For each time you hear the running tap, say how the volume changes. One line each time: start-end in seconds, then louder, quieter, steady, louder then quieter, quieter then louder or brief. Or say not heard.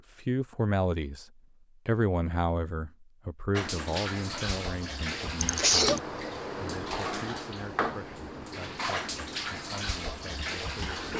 3.5-11.1 steady.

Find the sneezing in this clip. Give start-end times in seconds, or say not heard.
5.4-6.0.